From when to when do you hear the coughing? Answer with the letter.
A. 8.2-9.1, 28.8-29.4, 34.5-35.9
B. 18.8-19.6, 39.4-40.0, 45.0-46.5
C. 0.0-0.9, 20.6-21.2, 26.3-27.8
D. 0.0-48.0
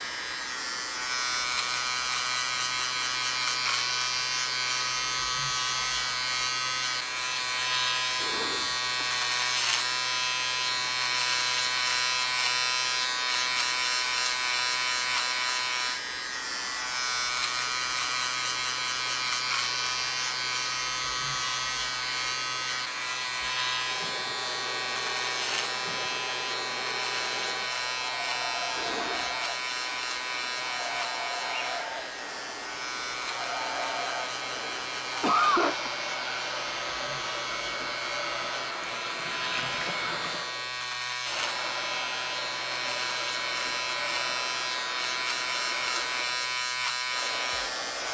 A.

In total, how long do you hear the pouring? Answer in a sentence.
The pouring can be heard for 2 seconds in total.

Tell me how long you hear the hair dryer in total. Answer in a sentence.
The hair dryer can be heard for 48 seconds in total.